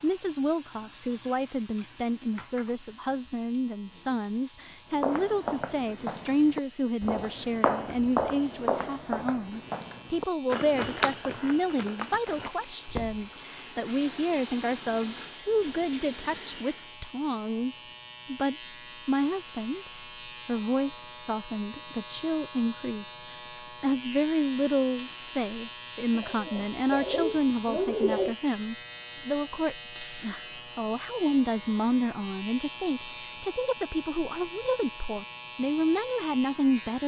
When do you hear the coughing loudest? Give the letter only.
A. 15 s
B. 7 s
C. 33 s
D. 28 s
D.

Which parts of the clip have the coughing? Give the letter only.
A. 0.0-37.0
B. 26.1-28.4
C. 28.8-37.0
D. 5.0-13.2
B.